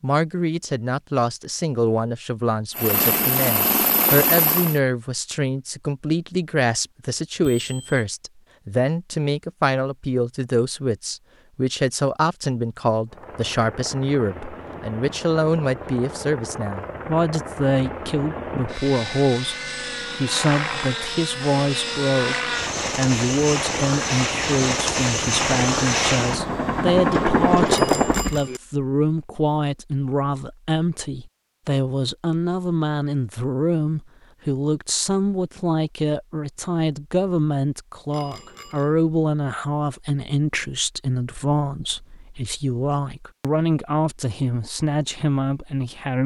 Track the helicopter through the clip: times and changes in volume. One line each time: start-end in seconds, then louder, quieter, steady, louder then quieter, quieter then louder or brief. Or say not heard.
2.8-4.8 brief
13.1-28.4 louder.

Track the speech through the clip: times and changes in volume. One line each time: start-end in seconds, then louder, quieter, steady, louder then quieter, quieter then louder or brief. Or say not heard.
0.0-19.6 steady
20.1-22.4 brief
22.9-46.2 steady.